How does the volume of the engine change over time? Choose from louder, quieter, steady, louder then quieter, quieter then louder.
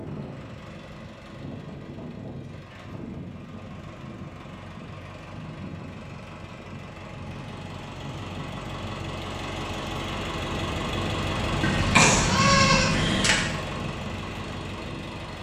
louder.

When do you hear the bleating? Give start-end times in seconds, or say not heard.
11.6-13.4.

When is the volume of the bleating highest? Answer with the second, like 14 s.
12 s.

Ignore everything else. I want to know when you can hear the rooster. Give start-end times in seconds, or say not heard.
not heard.